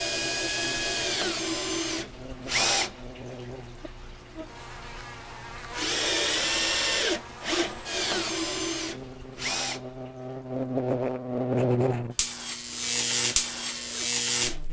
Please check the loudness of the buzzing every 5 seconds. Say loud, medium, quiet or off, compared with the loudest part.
quiet, quiet, loud.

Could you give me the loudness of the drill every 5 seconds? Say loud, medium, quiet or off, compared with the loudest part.
loud, loud, quiet.